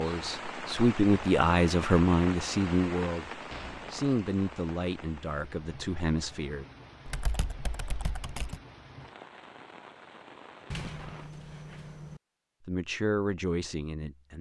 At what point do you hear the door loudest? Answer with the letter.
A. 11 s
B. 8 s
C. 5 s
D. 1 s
A.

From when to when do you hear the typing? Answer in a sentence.
The typing can be heard from 7.0 to 8.6 s.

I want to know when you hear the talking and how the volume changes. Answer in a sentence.
You can hear the talking from 0.0 to 6.7 s, getting quieter; and briefly from 12.7 to 14.3 s.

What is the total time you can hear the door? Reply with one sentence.
You can hear the door for 2 seconds altogether.